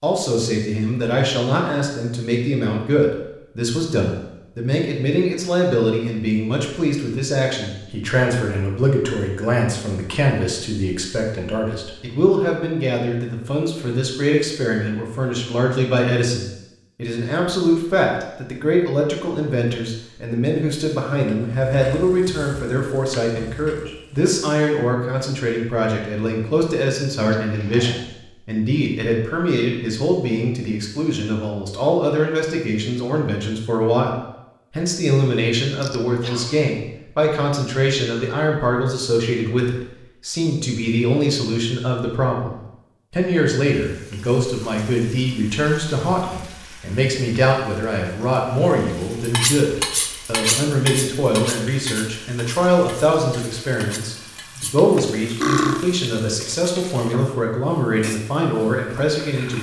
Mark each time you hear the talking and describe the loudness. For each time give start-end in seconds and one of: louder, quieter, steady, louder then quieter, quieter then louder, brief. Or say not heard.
0.0-59.5 steady.